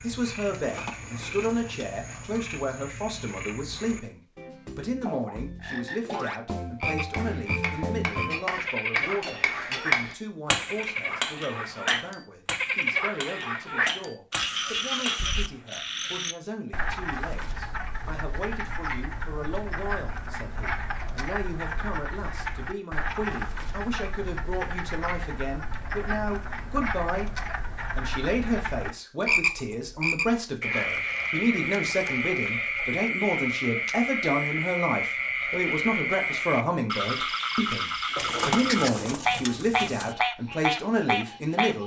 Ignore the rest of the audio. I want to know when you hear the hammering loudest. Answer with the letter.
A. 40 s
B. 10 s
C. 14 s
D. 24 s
B.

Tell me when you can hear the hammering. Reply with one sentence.
You can hear the hammering from 7.1 to 15.8 s.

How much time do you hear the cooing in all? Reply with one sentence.
The cooing can be heard for 4 seconds in total.